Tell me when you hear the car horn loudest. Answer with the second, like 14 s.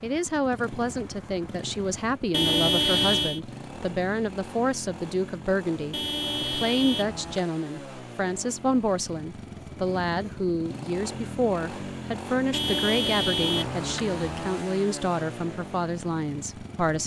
3 s.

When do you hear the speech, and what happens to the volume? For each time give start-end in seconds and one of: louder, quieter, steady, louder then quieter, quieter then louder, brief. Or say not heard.
0.0-17.0 steady.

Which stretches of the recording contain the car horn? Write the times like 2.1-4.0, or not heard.
2.3-3.4, 5.9-7.5, 12.5-14.6.